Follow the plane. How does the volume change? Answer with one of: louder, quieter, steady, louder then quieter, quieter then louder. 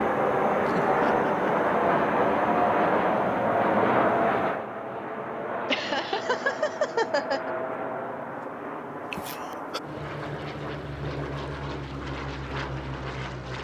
quieter.